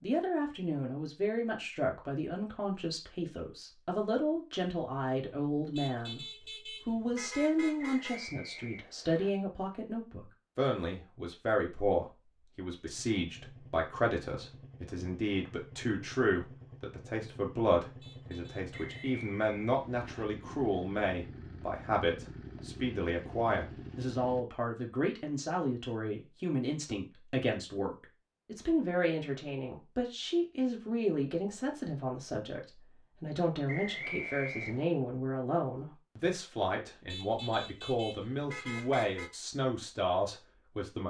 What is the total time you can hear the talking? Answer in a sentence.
The talking can be heard for 40 seconds in total.